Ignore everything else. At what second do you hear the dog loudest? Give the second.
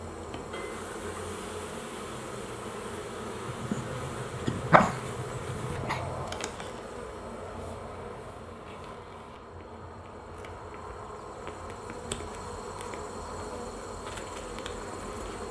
5 s.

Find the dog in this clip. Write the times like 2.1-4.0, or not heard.
3.5-6.2.